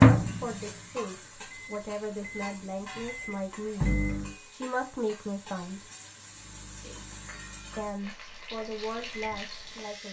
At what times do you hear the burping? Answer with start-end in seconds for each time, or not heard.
not heard.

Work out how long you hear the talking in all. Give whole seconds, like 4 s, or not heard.
8 s.